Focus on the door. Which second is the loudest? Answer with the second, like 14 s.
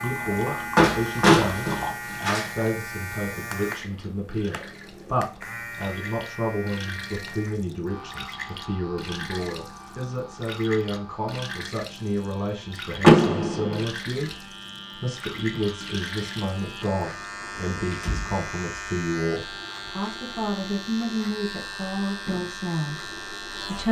13 s.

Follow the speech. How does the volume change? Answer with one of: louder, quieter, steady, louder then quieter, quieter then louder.
steady.